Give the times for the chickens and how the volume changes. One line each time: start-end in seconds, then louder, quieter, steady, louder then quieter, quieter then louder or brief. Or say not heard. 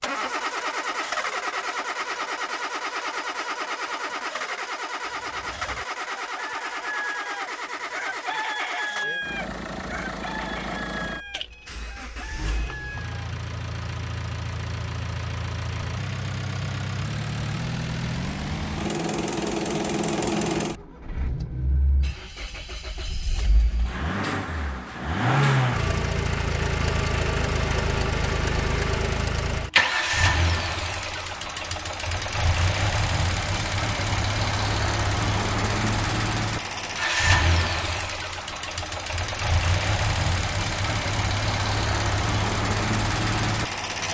5.0-13.1 louder then quieter.